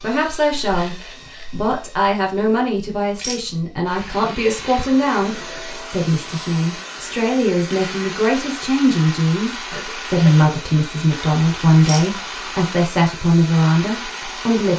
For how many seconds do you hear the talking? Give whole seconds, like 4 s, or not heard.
15 s.